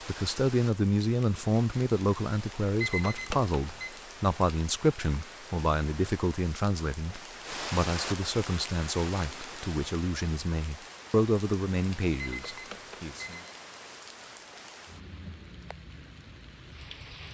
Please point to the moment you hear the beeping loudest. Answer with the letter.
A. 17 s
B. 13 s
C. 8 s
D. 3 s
D.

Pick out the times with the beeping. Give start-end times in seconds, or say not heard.
2.8-4.0, 12.2-13.6.